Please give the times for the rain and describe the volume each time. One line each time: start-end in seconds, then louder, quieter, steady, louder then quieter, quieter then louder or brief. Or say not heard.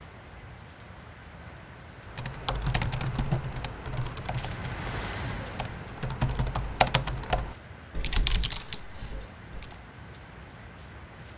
0.0-11.3 louder then quieter.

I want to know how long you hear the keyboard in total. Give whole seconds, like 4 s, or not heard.
8 s.